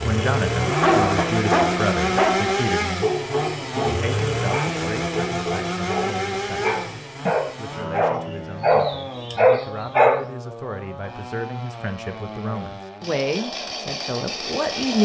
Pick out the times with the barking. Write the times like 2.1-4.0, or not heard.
0.6-10.2.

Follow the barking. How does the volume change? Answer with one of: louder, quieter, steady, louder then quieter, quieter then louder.
quieter then louder.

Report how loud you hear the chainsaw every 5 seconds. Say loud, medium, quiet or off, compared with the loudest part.
loud, medium, medium.